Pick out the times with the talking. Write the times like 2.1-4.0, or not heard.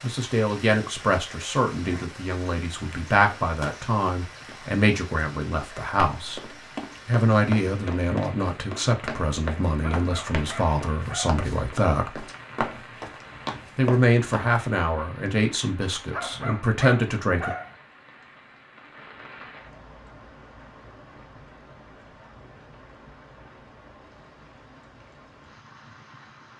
0.0-6.5, 7.0-12.2, 13.8-17.5.